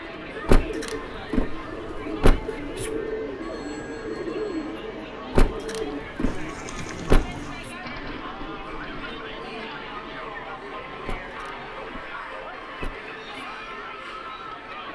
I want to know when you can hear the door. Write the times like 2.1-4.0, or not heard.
0.5-2.9, 5.3-7.7, 11.1-13.4.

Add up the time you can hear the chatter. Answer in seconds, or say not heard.
15 s.